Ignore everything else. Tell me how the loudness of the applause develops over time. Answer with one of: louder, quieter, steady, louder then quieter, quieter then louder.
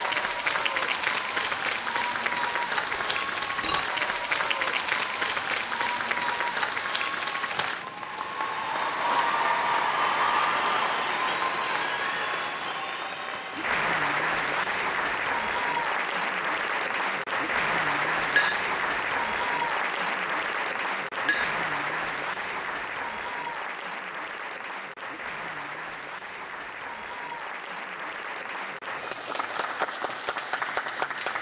quieter.